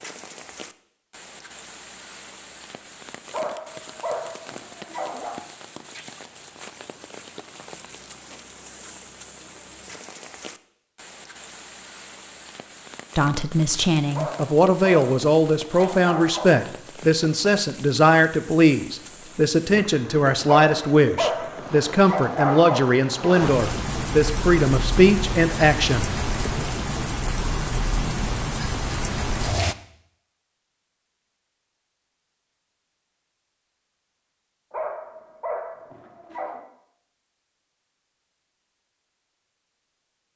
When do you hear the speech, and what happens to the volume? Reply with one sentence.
You can hear the speech from 13.2 to 26.1 s, at a steady volume.